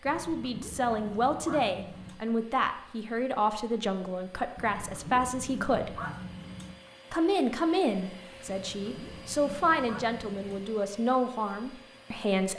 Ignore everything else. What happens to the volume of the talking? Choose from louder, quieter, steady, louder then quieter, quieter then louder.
steady.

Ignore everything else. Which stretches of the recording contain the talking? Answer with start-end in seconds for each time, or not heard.
0.0-6.0, 7.1-12.5.